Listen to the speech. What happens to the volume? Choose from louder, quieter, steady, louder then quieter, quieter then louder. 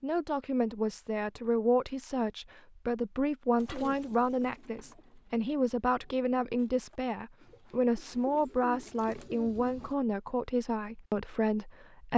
steady.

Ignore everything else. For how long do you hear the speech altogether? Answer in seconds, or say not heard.
12 s.